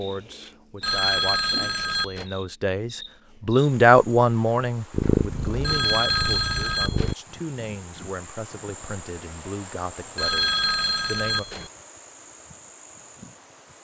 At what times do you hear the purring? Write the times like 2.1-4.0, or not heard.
4.9-7.2.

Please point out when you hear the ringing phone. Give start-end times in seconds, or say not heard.
0.8-2.2, 5.6-7.2, 10.2-11.7.